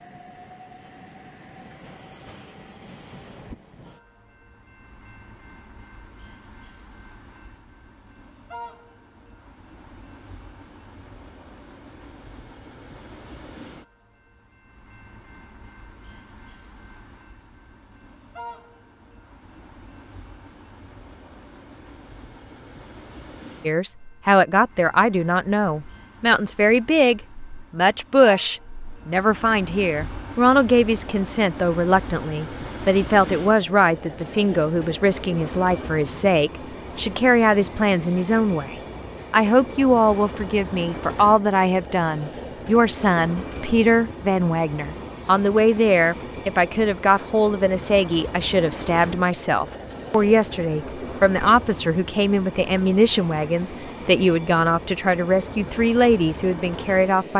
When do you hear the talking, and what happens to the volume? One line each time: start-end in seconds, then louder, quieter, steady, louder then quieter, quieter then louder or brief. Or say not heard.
23.6-57.3 steady.